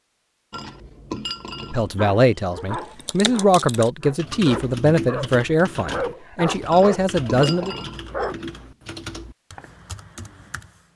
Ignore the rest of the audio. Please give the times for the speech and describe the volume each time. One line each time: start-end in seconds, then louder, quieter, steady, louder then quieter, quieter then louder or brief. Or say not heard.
1.6-7.8 steady.